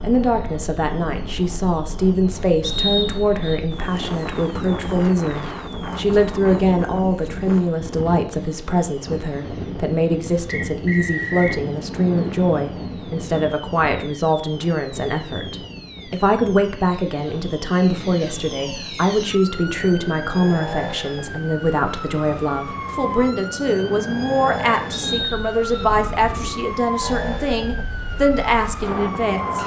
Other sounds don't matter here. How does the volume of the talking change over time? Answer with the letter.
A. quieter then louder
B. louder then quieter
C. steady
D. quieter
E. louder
C.